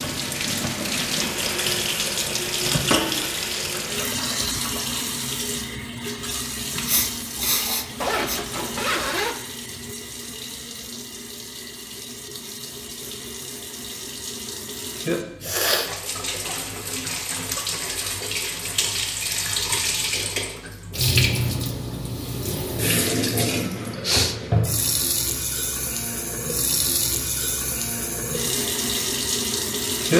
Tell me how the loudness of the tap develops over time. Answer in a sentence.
The volume of the tap goes down, then up.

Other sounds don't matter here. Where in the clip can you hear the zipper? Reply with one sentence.
The zipper can be heard from 8.0 to 9.4 s.